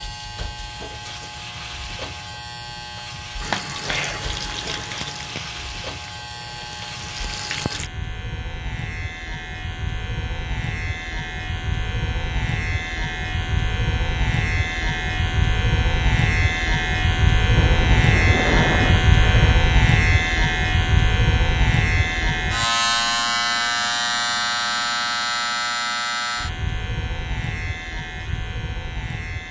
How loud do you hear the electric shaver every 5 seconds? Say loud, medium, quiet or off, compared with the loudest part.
quiet, quiet, medium, loud, loud, medium.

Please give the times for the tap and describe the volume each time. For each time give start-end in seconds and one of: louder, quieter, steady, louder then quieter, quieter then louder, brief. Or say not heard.
3.4-7.9 quieter then louder.